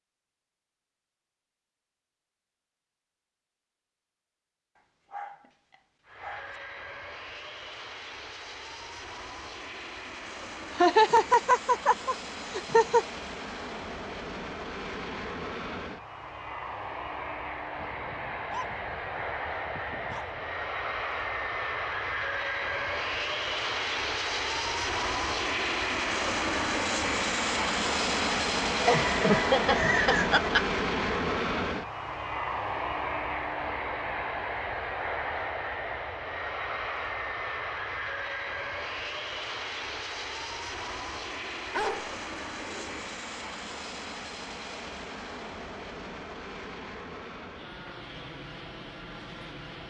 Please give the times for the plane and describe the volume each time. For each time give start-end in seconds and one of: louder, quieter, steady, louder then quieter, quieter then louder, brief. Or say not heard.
6.0-49.8 louder then quieter.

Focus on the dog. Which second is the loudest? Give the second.
42 s.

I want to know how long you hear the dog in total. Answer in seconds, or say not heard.
6 s.